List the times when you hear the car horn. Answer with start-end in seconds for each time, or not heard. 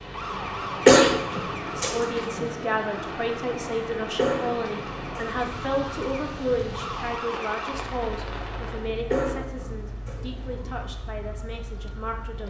not heard.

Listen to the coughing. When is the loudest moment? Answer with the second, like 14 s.
1 s.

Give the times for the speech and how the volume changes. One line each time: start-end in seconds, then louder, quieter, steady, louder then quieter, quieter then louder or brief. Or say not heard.
1.8-12.4 quieter.